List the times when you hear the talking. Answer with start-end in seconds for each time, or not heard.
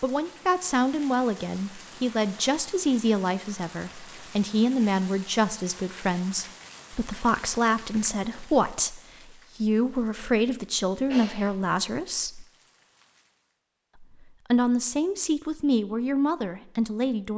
0.0-12.4, 14.0-17.3.